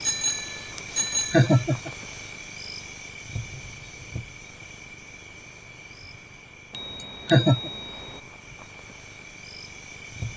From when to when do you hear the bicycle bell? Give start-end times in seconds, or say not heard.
0.0-1.6, 6.7-8.2.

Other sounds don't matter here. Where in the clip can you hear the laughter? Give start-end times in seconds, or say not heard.
1.3-1.9, 7.3-7.7.